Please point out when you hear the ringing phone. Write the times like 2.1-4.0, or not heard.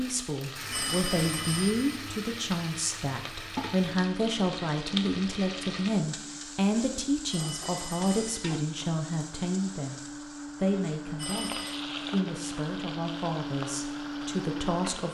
0.7-2.0, 7.2-8.6, 11.2-11.8.